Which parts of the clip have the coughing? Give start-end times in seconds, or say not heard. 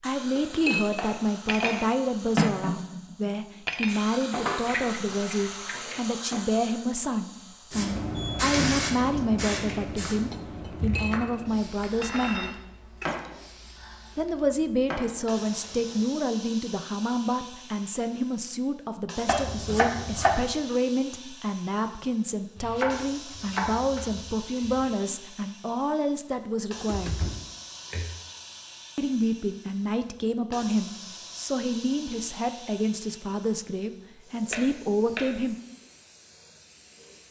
not heard.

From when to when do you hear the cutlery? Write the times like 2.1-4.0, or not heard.
0.3-6.4, 9.5-13.2.